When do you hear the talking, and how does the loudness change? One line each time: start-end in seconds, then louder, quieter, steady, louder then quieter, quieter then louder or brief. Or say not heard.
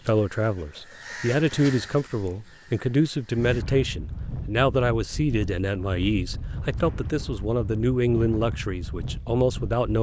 0.1-9.9 steady.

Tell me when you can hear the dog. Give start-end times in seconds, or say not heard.
not heard.